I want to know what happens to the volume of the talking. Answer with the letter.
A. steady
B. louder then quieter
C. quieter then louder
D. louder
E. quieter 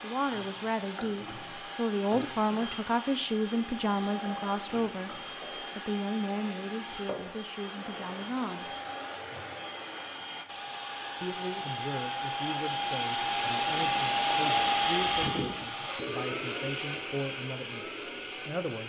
E.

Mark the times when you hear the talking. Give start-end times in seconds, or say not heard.
0.0-8.8, 11.2-18.8.